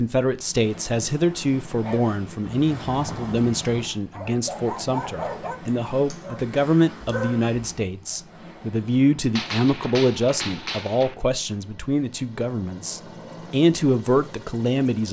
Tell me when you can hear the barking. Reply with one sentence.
You can hear the barking from 1.8 to 8.2 s.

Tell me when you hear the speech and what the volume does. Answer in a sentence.
You can hear the speech from 0.0 to 15.0 s, at a steady volume.